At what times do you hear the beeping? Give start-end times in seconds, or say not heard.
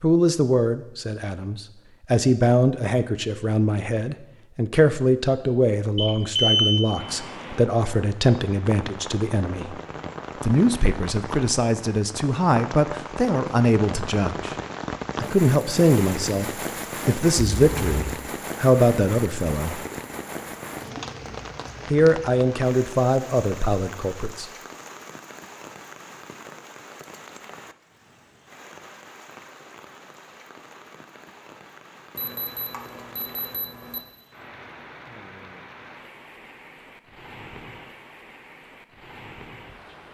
6.0-6.8, 17.4-17.9, 32.1-34.0.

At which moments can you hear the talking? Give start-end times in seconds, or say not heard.
0.0-9.8, 10.4-14.6, 15.2-19.9, 21.9-24.4.